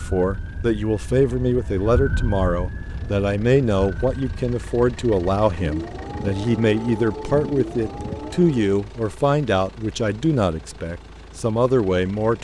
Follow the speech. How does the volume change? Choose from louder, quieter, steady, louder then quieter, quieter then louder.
steady.